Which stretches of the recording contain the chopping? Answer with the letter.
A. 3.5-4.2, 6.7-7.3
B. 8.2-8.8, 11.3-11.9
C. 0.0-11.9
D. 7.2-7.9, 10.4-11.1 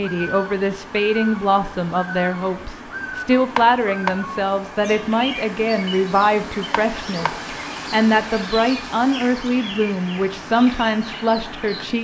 A.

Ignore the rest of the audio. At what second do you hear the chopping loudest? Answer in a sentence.
The loudest moment of the chopping is at 4 seconds.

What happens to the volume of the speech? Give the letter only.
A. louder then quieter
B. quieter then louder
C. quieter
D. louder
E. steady
E.